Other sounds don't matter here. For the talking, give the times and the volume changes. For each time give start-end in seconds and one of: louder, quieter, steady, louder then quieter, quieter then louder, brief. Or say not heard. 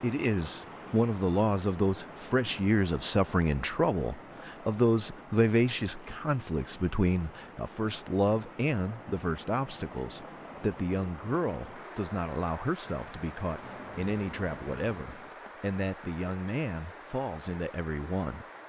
0.0-18.4 quieter.